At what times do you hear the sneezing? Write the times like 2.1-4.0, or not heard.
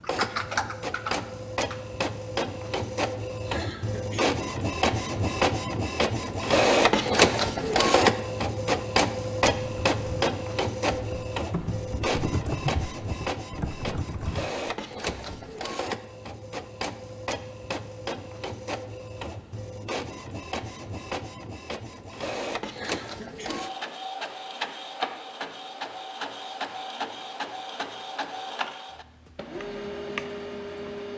3.4-4.3, 22.7-23.7.